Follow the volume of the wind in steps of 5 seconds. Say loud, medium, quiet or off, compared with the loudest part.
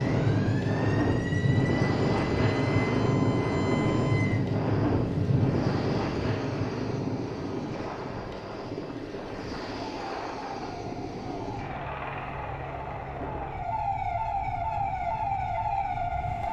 loud, medium, quiet, quiet.